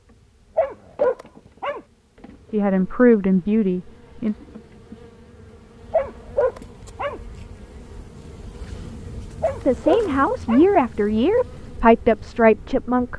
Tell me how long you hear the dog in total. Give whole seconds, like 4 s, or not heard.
4 s.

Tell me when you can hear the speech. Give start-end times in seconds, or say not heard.
2.5-4.3, 9.7-13.1.